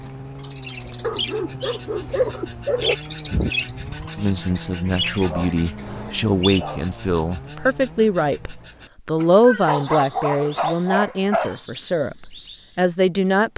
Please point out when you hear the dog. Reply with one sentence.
You can hear the dog from 1.0 to 3.0 s, from 5.2 to 7.0 s and from 9.2 to 11.6 s.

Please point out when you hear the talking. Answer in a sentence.
You can hear the talking from 4.2 to 13.5 s.